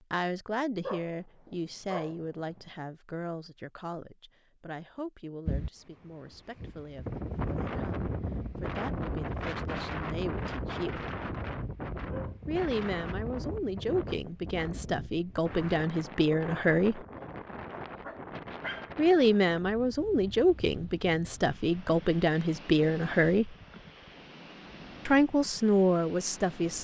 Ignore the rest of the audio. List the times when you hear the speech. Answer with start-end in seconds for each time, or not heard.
0.1-11.1, 12.4-17.1, 18.9-23.6, 25.1-26.7.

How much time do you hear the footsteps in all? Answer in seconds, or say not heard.
not heard.